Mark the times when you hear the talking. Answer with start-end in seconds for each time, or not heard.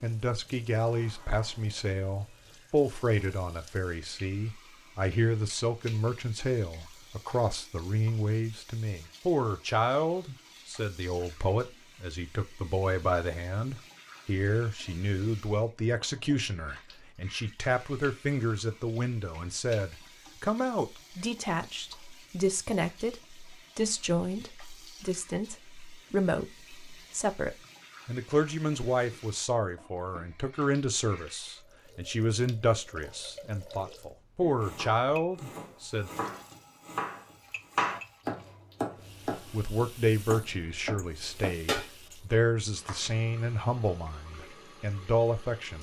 0.0-36.1, 39.5-45.7.